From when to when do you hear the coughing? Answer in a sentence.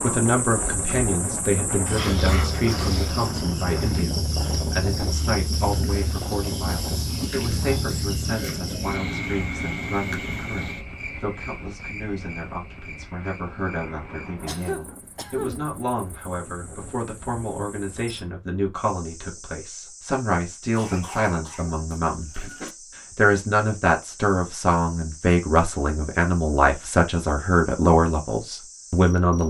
You can hear the coughing from 1.9 to 3.0 s, from 14.4 to 15.7 s and from 20.8 to 22.8 s.